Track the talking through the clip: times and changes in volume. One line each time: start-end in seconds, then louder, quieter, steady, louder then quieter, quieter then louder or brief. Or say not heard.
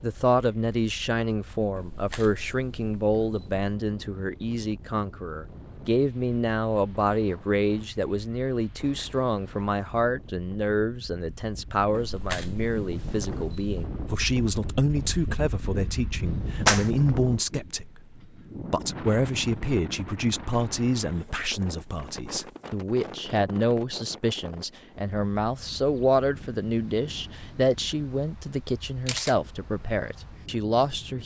0.0-31.2 steady.